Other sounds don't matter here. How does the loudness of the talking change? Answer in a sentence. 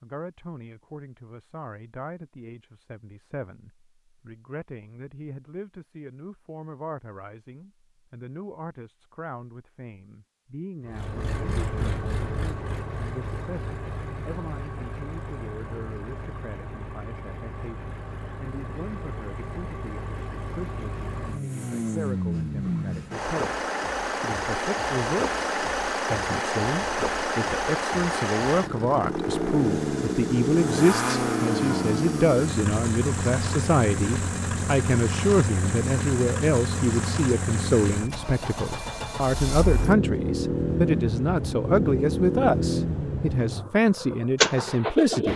The loudness of the talking goes up.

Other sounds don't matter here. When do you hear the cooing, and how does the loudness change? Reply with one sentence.
You can't hear the cooing here.